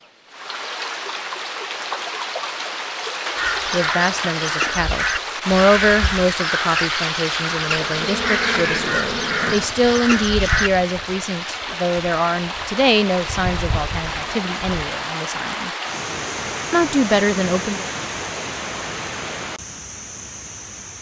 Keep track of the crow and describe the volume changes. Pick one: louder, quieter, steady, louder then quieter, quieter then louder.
steady.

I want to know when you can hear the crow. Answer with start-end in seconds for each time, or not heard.
3.4-10.7.